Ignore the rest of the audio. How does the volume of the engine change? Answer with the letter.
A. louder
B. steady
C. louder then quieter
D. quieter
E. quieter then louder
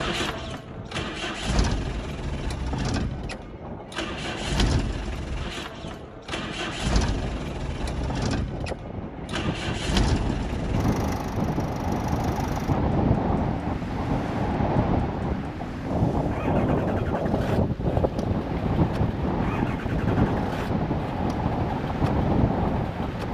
D.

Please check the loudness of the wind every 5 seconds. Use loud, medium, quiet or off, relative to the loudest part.
quiet, medium, loud, loud, loud.